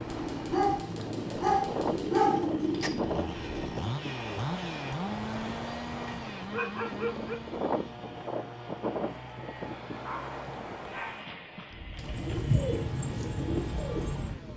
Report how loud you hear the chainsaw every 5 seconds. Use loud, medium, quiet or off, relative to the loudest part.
loud, loud, medium.